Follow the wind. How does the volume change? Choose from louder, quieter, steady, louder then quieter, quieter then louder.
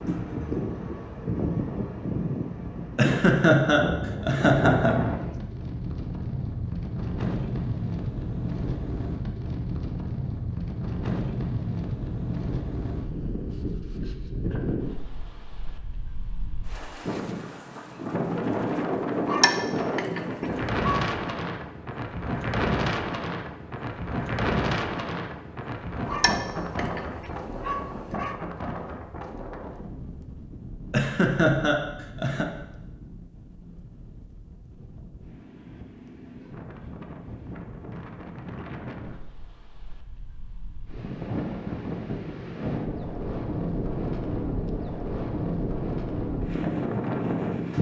quieter then louder.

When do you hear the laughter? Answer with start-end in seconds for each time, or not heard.
3.0-5.0, 30.9-32.5.